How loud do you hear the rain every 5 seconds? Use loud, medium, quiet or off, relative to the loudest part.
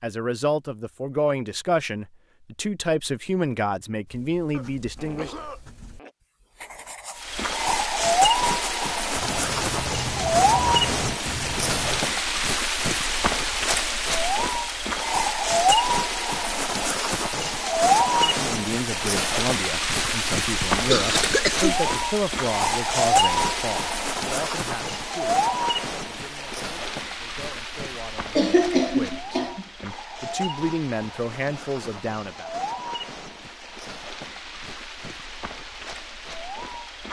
off, loud, loud, loud, loud, medium, quiet, quiet.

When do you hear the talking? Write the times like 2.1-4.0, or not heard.
0.0-5.3, 18.2-32.5.